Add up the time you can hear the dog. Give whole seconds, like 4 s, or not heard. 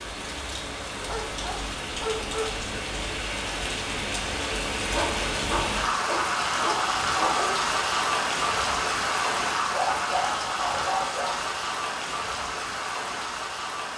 6 s.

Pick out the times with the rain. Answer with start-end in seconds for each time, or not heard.
0.0-13.9.